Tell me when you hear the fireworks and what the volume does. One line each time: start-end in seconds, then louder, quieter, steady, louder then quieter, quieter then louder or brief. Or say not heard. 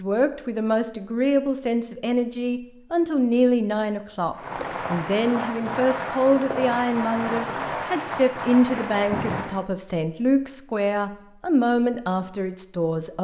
4.3-9.7 steady.